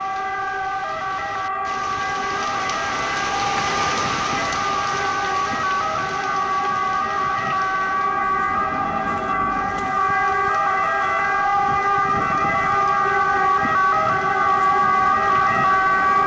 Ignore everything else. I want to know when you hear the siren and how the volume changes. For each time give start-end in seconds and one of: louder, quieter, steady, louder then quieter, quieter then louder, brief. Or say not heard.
0.0-16.2 louder.